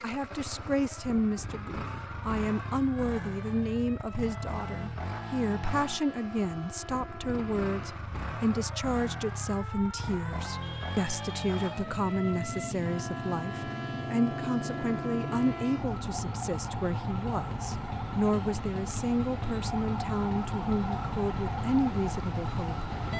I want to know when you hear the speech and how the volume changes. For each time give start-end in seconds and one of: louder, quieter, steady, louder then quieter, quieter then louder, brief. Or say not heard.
0.0-22.9 steady.